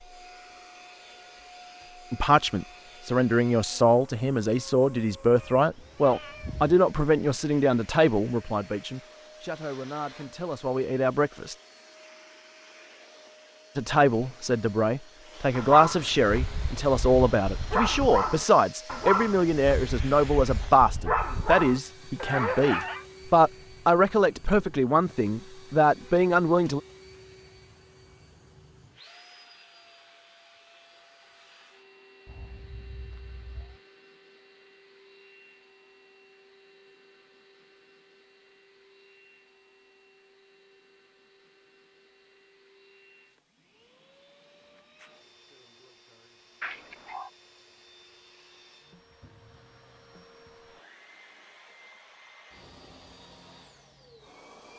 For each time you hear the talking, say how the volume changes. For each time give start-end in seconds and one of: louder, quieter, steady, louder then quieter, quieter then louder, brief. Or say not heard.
2.1-11.6 quieter
13.8-26.8 steady.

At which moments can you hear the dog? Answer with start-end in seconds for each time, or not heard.
15.6-23.1.